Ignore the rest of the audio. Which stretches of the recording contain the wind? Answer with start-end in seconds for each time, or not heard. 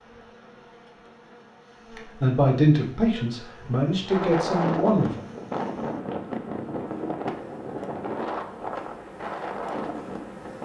4.0-10.6.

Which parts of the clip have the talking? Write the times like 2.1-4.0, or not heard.
2.1-5.1.